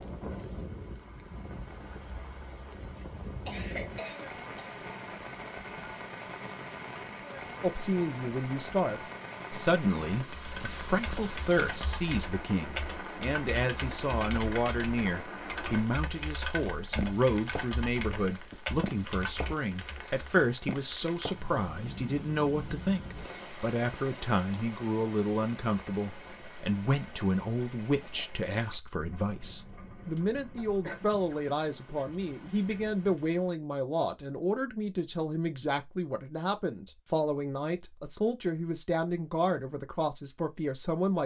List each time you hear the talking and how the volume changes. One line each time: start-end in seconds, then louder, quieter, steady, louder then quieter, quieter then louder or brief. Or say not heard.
7.6-41.2 steady.